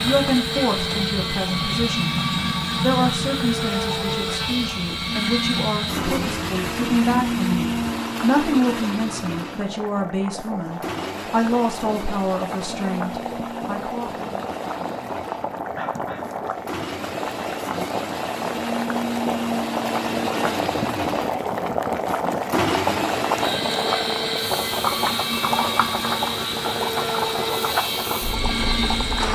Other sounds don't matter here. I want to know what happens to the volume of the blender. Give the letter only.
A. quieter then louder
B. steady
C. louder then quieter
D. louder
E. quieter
A.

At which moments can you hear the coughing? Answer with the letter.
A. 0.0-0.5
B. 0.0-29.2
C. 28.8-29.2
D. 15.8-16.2
D.